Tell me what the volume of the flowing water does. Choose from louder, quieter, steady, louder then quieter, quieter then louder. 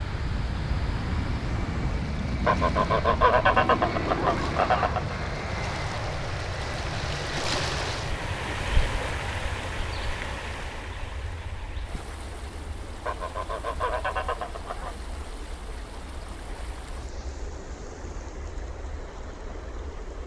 louder then quieter.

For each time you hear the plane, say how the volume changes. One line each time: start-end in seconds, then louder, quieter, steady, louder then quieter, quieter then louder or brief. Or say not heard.
0.0-20.2 quieter.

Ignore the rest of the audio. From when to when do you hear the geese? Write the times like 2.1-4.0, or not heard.
2.5-5.2, 13.1-14.9.